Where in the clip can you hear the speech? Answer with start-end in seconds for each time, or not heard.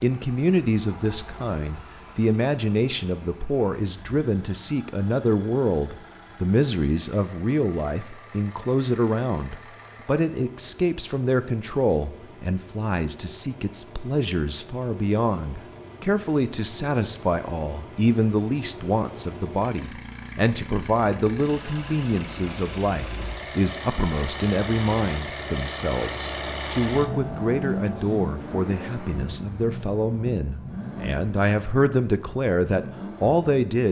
0.0-33.8.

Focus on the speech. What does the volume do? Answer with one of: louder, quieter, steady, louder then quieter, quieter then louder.
steady.